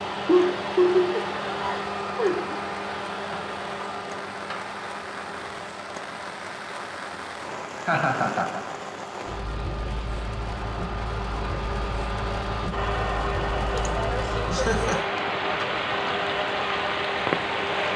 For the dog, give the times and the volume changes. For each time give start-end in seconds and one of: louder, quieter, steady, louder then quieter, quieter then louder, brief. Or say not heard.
not heard.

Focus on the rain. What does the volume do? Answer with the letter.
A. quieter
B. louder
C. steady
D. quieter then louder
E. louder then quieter
B.